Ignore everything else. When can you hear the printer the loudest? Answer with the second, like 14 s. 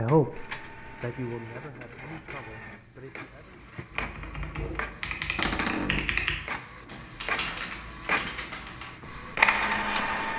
10 s.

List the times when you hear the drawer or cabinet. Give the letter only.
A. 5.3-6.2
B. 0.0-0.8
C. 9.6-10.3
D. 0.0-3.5
A.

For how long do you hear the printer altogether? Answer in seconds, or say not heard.
10 s.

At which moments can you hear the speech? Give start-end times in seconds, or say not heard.
0.0-3.5.